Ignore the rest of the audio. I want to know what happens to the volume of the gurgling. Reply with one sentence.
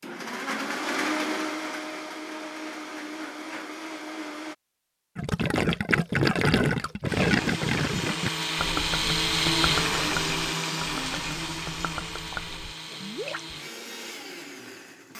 The loudness of the gurgling goes down.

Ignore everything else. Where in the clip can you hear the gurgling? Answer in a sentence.
You can hear the gurgling from 5.2 to 13.4 s.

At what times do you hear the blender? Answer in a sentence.
The blender can be heard from 0.0 to 4.5 s and from 7.0 to 15.1 s.